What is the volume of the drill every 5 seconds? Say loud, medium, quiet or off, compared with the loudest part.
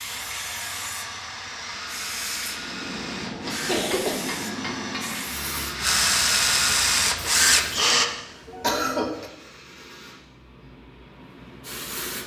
quiet, loud, off.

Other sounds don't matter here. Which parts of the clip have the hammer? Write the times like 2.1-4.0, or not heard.
2.5-5.4.